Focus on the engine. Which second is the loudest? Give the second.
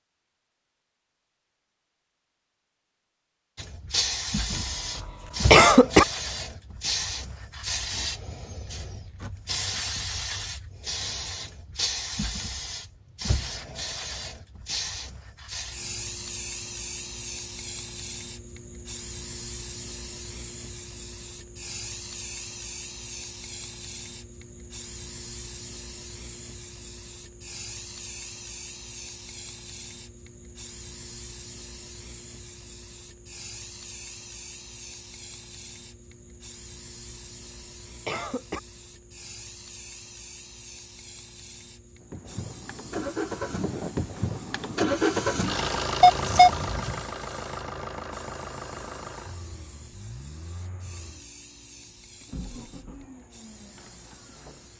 45 s.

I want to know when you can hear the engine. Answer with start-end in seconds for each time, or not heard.
42.0-54.7.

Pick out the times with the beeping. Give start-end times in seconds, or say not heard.
46.0-47.0.